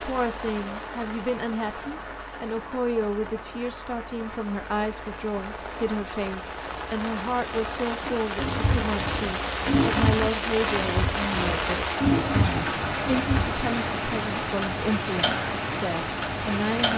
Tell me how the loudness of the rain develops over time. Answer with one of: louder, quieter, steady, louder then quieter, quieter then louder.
louder.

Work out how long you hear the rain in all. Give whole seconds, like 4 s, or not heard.
17 s.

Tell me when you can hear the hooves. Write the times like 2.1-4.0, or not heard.
8.0-13.4.